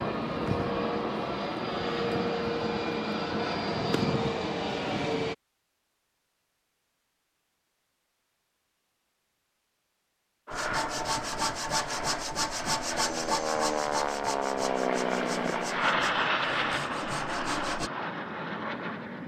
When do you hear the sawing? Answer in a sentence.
You can hear the sawing from 10.5 to 17.9 s.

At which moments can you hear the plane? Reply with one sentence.
The plane can be heard from 0.0 to 5.3 s and from 10.4 to 19.2 s.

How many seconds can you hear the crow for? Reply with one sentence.
You can't hear the crow here.